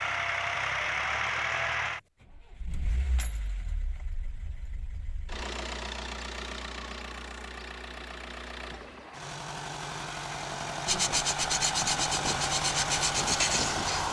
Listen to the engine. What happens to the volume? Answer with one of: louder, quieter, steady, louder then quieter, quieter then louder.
quieter then louder.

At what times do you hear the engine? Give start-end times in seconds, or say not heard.
0.0-14.0.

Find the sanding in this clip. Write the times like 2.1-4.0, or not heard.
10.8-14.0.